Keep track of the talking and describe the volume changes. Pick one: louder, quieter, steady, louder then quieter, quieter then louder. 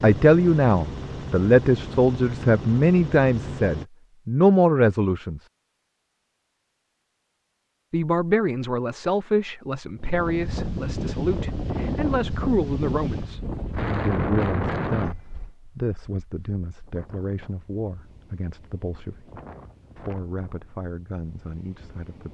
quieter.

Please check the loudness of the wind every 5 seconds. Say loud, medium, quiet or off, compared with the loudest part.
off, off, loud, quiet, quiet.